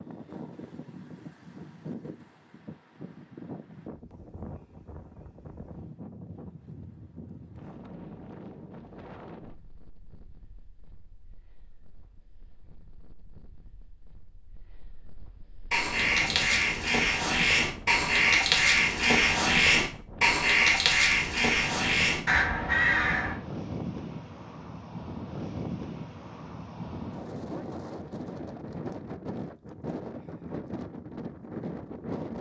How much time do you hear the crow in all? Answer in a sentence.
You can hear the crow for 8 seconds altogether.